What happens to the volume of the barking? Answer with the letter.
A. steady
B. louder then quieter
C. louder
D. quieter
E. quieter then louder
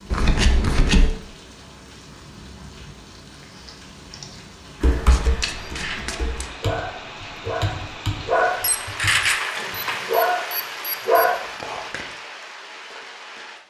C.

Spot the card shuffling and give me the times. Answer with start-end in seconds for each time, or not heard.
0.1-1.2, 5.0-6.5, 11.2-12.1.